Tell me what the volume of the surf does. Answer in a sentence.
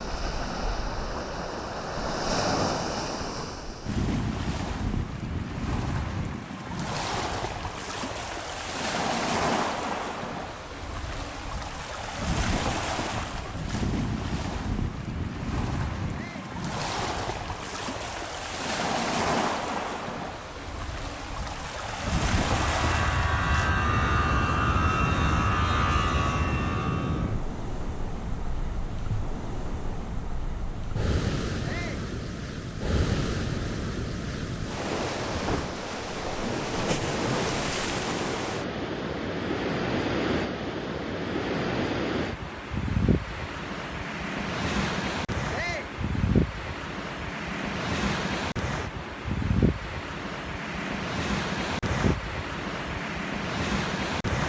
The volume of the surf stays about the same.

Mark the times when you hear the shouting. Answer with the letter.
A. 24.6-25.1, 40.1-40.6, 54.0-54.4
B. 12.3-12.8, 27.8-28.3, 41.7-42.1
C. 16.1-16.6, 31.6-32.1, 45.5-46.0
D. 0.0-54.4
C.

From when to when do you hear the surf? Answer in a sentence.
The surf can be heard from 0.0 to 54.4 s.